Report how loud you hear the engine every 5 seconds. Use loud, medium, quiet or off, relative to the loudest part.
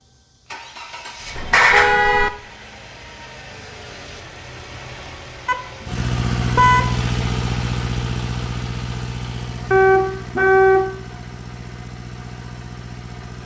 quiet, loud, medium.